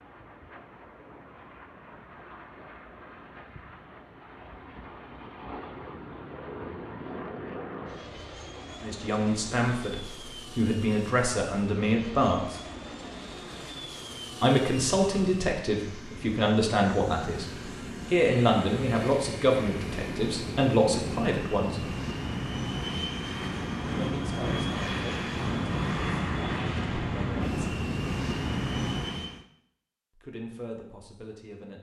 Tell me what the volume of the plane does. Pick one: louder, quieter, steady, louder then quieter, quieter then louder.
louder.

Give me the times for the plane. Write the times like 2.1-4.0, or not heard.
0.0-29.4.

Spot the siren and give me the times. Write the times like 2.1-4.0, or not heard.
not heard.